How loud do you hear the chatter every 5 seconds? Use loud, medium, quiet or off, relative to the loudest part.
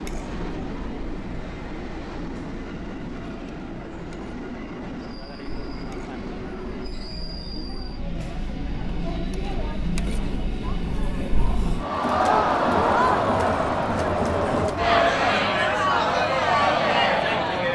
quiet, quiet, loud, loud.